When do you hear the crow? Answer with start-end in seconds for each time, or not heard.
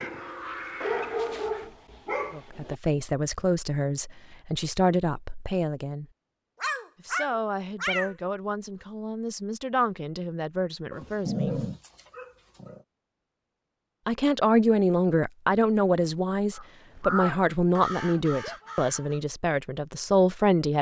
0.0-1.7, 16.6-19.2.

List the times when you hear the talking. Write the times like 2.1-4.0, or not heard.
2.3-6.0, 7.0-11.6, 14.1-20.7.